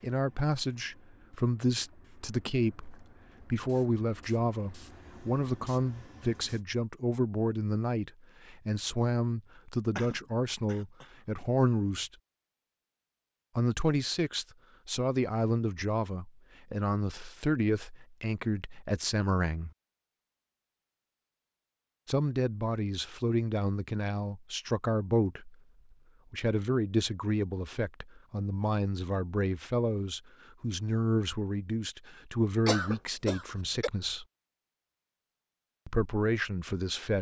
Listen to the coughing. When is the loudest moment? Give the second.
33 s.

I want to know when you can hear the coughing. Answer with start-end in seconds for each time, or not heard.
9.9-11.1, 32.6-33.9.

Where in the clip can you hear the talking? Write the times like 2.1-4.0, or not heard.
0.0-12.1, 13.6-19.7, 22.1-25.6, 26.3-34.2, 35.9-37.1.